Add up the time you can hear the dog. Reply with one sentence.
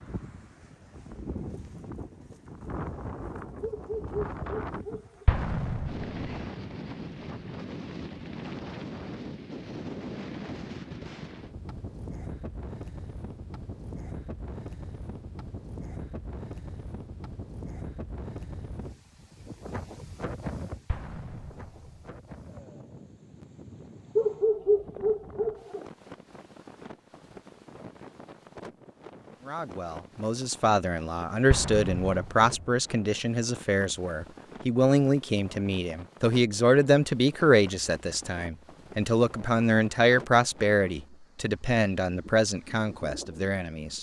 You can hear the dog for 3 seconds altogether.